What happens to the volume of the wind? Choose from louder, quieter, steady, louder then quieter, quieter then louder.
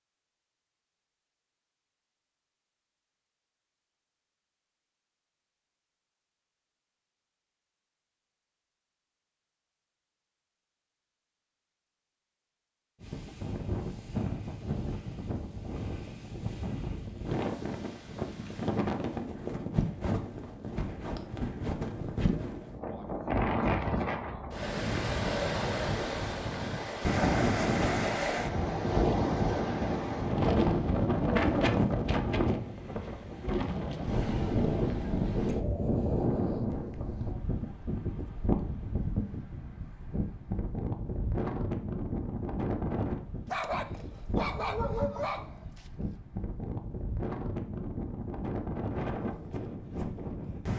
louder then quieter.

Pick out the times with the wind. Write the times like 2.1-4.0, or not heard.
13.0-50.7.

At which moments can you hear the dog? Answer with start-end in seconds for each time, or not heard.
43.5-45.9.